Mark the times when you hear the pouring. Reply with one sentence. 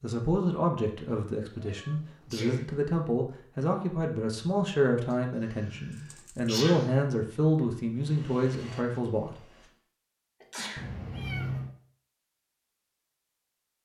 You can't hear the pouring here.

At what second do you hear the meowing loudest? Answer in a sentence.
The volume of the meowing peaks at 11 seconds.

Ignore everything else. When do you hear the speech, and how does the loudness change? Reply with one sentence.
The speech can be heard from 0.0 to 9.3 s, at a steady volume.